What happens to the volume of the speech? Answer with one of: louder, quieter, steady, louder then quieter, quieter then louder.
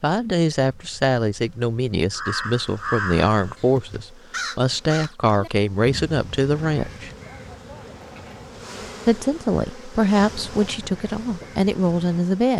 steady.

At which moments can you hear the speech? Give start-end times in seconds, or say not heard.
0.0-7.1, 9.1-12.5.